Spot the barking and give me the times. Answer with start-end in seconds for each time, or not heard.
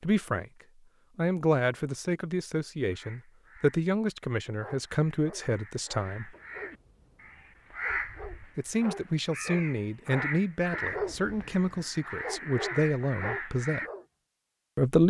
4.6-14.1.